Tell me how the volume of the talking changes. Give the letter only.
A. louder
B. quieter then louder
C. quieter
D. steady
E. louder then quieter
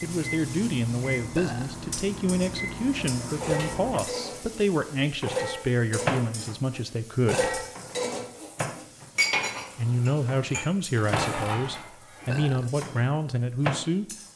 D.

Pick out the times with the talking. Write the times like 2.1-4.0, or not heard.
0.0-7.5, 9.8-14.2.